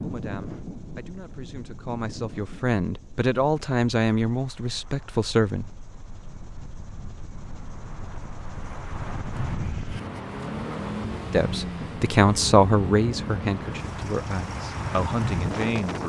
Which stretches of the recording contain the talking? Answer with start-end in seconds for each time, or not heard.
0.0-5.7, 11.3-16.0.